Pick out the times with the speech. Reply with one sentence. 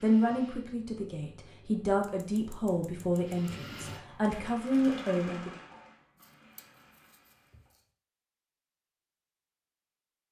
You can hear the speech from 0.0 to 5.5 s.